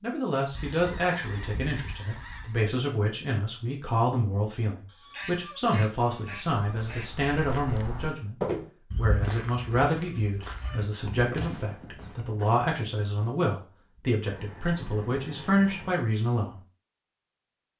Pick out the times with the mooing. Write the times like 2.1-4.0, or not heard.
not heard.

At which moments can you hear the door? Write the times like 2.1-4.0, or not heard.
not heard.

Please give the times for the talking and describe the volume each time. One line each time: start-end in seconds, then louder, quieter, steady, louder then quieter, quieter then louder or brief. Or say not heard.
0.0-16.6 steady.